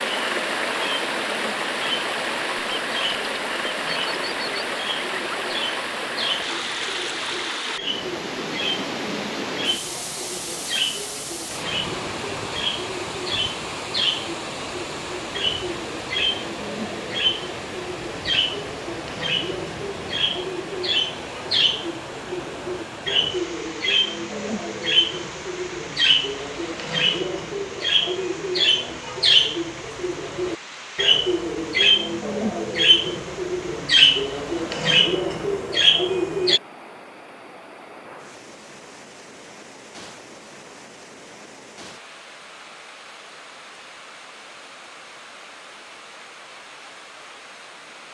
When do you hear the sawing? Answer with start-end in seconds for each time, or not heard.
not heard.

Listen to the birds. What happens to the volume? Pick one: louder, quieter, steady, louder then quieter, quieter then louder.
louder.